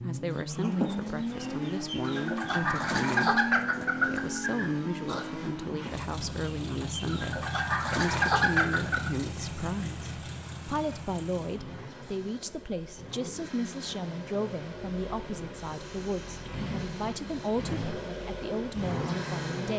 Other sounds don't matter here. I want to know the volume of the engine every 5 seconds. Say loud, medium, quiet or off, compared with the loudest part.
loud, loud, medium, loud.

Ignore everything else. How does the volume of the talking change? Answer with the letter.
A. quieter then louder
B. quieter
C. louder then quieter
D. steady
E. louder
D.